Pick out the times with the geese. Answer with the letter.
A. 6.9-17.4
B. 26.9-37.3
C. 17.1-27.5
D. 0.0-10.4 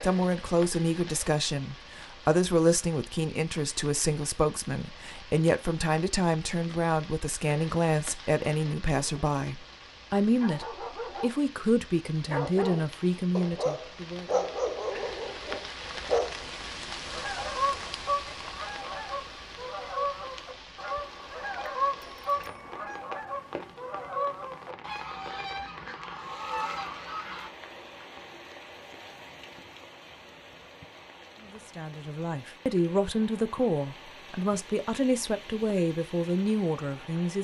C.